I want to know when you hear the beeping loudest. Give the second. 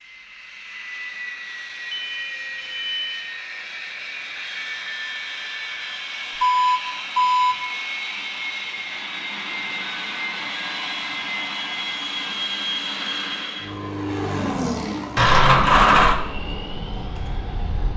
16 s.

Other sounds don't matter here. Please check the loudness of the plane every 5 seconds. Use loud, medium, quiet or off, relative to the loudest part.
medium, loud, loud, medium.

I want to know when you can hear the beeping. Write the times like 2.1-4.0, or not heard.
1.9-3.2, 6.4-7.5, 15.2-16.1.